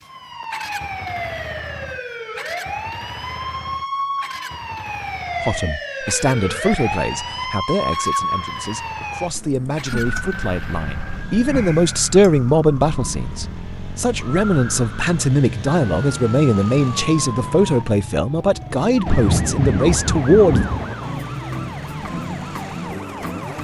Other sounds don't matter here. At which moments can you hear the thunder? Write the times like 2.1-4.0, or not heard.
19.1-20.9.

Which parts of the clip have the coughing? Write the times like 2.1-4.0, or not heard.
not heard.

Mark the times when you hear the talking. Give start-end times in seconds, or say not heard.
5.5-20.7.